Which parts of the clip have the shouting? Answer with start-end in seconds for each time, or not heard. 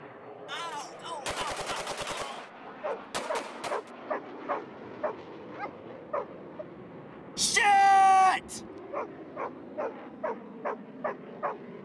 0.5-2.5, 7.3-8.6.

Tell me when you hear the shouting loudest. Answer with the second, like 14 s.
8 s.